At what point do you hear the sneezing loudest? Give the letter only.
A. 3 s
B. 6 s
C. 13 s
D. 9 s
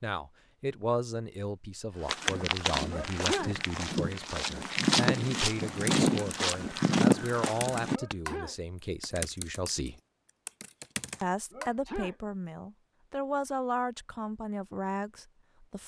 A.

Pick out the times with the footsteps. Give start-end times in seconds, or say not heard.
2.0-8.2.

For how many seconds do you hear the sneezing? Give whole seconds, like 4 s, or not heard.
2 s.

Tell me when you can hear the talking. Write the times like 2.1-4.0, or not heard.
0.0-10.0, 11.2-15.8.